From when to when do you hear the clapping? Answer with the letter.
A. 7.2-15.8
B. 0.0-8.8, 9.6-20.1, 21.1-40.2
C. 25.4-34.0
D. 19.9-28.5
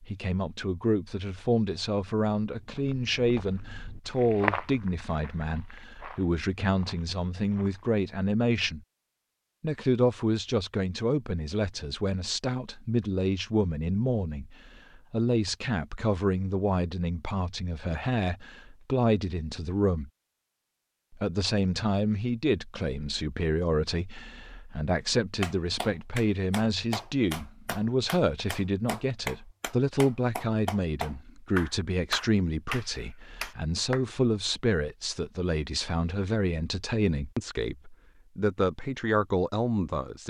C.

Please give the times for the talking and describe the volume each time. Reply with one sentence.
You can hear the talking from 0.0 to 8.8 s, at a steady volume; from 9.6 to 20.1 s, at a steady volume; and from 21.1 to 40.2 s, at a steady volume.